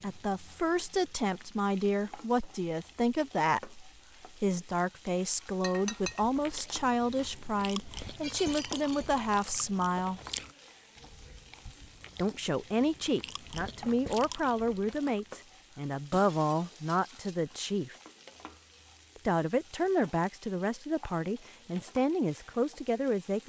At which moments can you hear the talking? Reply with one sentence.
You can hear the talking from 0.0 to 10.2 s, from 12.2 to 17.9 s and from 19.1 to 23.4 s.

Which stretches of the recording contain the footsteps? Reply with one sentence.
The footsteps can't be heard in this clip.